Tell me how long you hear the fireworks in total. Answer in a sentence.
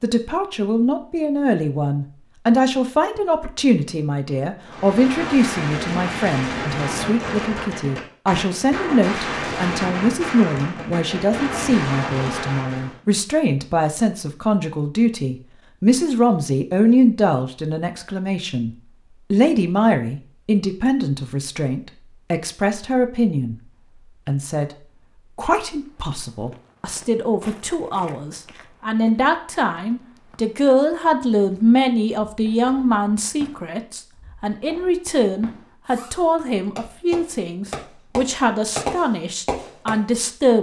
You can hear the fireworks for 16 seconds altogether.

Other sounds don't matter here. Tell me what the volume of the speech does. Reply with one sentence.
The volume of the speech stays about the same.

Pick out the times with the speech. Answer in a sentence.
The speech can be heard from 0.0 to 24.7 s and from 25.4 to 40.5 s.